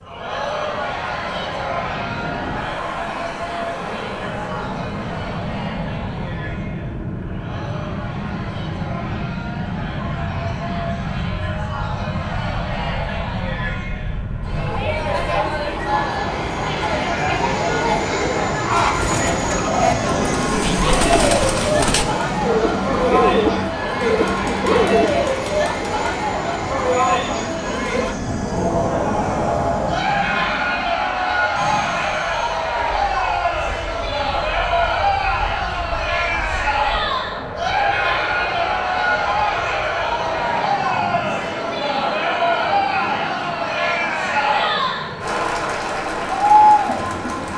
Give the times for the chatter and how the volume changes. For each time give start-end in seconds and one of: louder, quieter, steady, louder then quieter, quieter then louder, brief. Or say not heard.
0.0-47.5 louder.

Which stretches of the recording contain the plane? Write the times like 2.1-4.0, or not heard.
0.0-47.5.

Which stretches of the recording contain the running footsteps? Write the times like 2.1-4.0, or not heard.
not heard.